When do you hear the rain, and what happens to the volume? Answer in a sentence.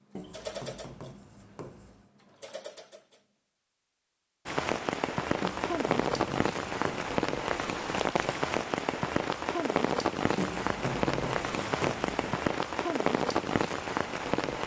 You can hear the rain from 4.5 to 14.6 s, at a steady volume.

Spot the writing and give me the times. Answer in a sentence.
You can hear the writing from 0.1 to 2.1 s, from 5.4 to 7.1 s and from 10.3 to 12.3 s.